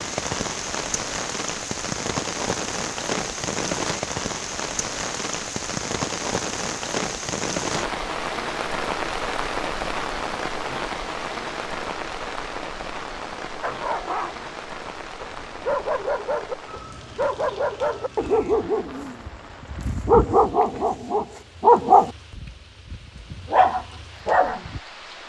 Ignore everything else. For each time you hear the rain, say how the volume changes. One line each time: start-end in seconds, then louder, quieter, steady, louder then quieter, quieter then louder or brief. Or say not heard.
0.0-25.2 quieter.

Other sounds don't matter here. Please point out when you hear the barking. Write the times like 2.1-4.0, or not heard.
13.6-24.8.